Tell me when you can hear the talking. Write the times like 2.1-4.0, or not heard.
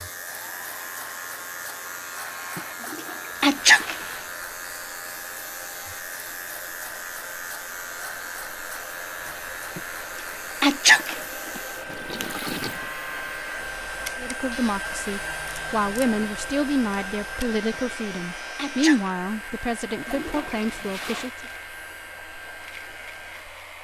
14.2-21.4.